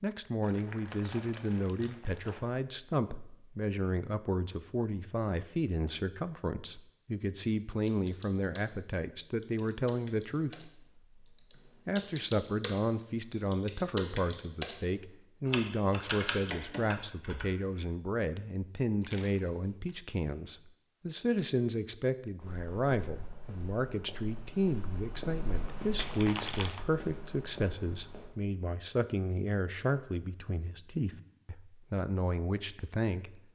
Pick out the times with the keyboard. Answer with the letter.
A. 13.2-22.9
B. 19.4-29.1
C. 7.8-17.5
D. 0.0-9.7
C.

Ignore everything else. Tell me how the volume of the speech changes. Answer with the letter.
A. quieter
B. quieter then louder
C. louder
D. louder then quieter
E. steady
E.